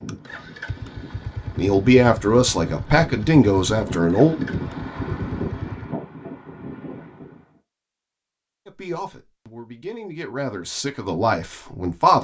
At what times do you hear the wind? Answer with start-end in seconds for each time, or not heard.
0.0-7.6.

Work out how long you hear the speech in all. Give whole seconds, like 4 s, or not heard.
6 s.